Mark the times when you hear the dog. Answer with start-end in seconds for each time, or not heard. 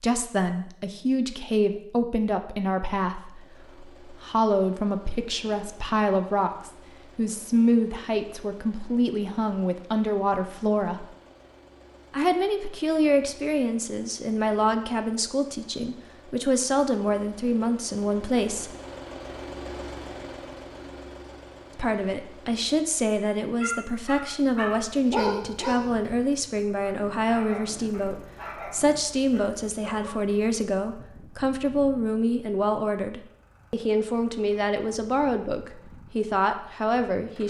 23.1-30.3.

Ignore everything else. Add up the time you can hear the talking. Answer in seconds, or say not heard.
33 s.